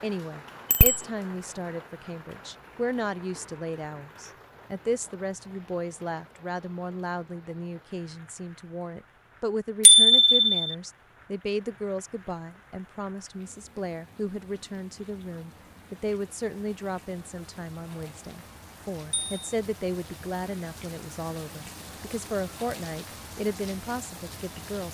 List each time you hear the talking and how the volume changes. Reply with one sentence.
The talking can be heard from 0.0 to 24.9 s, at a steady volume.